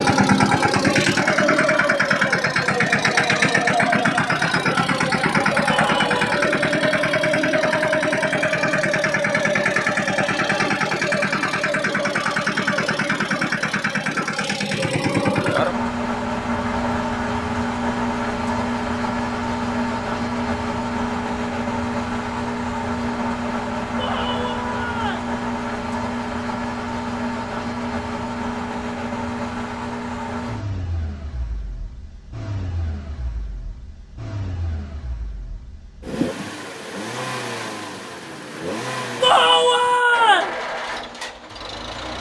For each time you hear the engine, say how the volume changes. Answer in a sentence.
You can hear the engine from 0.0 to 42.1 s, getting quieter.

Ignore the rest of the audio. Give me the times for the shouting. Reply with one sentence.
The shouting can be heard from 5.7 to 6.5 s, from 23.9 to 25.3 s and from 39.2 to 40.5 s.